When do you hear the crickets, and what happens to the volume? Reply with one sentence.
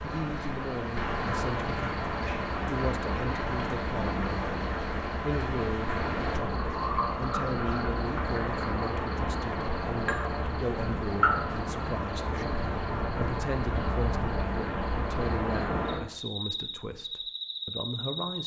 You can hear the crickets from 0.0 to 18.4 s, at a steady volume.